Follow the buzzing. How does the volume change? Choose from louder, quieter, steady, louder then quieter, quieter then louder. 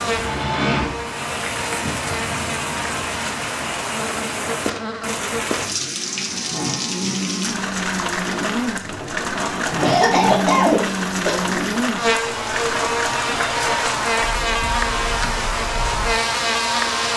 louder.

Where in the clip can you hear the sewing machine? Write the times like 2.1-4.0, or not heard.
0.0-1.1.